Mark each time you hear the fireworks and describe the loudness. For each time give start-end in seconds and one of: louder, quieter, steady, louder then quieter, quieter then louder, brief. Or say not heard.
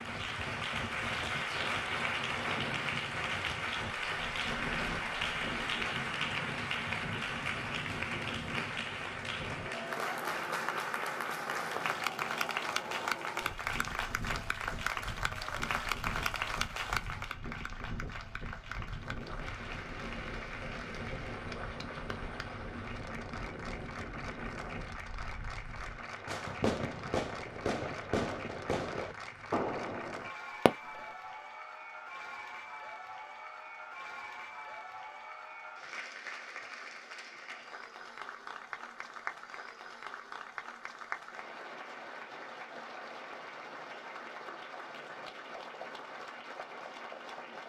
25.9-31.1 steady.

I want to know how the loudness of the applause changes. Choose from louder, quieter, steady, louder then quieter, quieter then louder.
quieter.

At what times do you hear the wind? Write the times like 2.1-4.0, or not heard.
0.0-26.1.